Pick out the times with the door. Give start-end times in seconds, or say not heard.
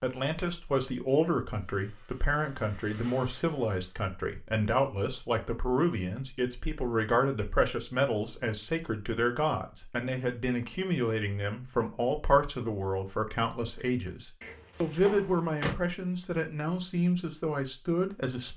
14.4-15.8.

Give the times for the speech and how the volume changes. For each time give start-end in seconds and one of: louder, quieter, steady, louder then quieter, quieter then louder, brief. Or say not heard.
0.0-18.5 steady.